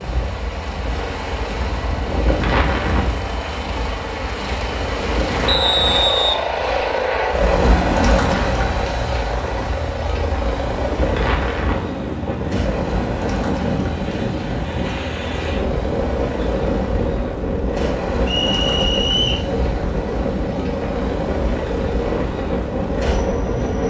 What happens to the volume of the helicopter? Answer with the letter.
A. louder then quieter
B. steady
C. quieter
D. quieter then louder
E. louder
A.